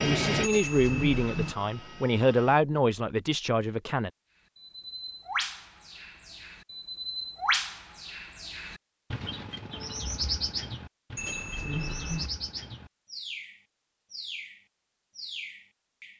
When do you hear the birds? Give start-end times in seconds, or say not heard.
4.5-16.1.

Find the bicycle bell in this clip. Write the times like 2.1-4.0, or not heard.
0.4-1.6, 11.2-12.3.